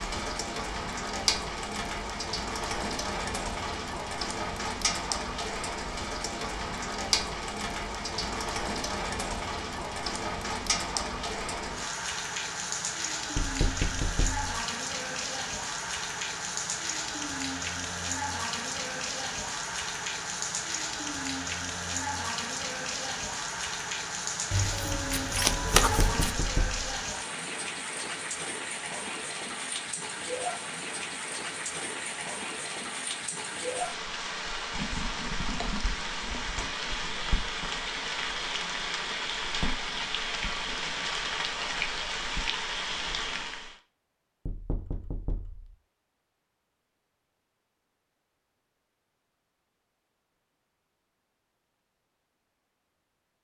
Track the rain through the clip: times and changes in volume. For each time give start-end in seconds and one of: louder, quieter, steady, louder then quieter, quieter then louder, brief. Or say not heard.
0.0-43.8 steady.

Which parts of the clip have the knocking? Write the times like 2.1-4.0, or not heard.
13.3-14.4, 25.8-26.8, 44.5-45.8.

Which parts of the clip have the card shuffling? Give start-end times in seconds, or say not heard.
24.5-26.4.